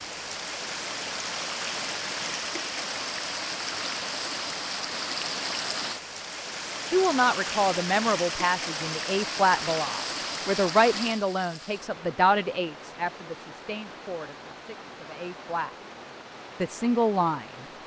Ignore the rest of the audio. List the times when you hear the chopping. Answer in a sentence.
The chopping can't be heard in this clip.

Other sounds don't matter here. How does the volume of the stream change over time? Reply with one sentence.
The loudness of the stream goes down.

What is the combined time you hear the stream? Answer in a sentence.
The stream can be heard for 18 seconds in total.